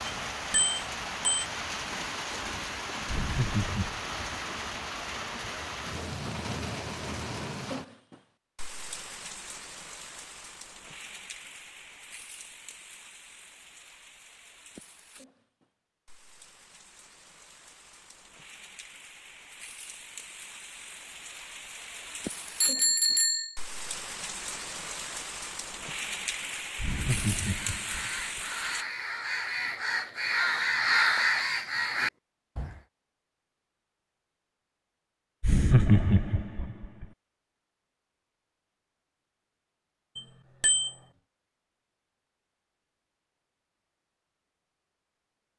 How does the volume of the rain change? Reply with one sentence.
The loudness of the rain goes down, then up.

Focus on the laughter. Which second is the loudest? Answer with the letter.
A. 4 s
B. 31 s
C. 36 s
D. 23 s
C.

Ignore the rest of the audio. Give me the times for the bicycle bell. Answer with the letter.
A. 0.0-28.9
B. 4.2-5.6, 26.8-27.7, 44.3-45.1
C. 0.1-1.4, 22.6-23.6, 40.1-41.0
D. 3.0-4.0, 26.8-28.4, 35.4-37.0
C.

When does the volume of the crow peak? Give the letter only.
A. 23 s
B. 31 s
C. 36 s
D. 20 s
B.